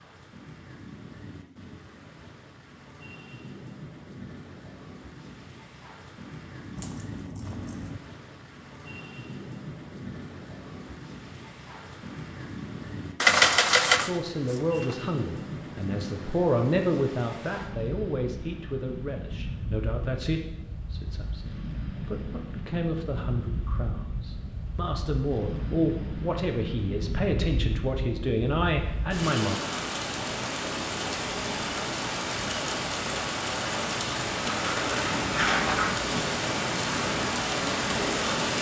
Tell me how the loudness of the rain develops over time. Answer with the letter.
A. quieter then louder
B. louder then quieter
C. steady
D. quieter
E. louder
E.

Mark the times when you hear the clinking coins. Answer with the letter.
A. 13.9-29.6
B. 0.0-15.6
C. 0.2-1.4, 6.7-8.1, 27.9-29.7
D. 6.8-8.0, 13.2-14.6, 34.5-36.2
D.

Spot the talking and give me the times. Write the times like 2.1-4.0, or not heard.
13.9-29.6.